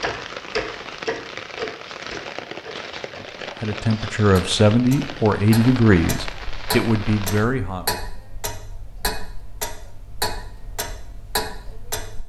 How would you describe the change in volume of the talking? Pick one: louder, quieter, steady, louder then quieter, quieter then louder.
quieter then louder.